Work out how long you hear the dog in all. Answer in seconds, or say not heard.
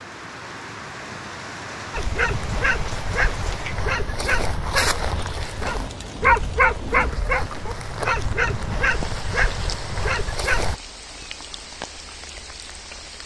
9 s.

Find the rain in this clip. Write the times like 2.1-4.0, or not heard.
0.0-13.2.